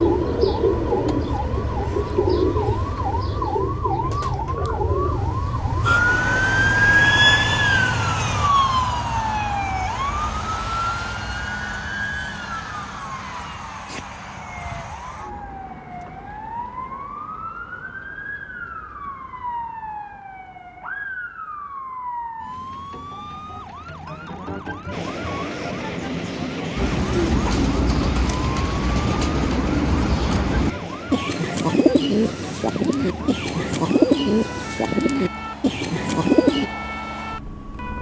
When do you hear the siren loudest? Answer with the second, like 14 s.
7 s.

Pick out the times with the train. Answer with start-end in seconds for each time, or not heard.
0.0-8.5, 24.9-37.9.